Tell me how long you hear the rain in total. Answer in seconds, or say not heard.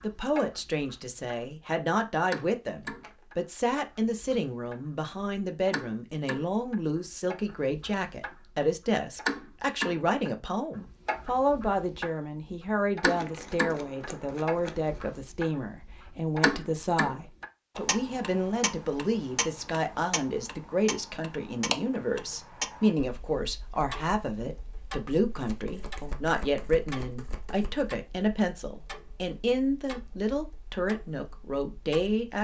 not heard.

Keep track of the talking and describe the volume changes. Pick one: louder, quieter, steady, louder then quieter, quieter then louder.
steady.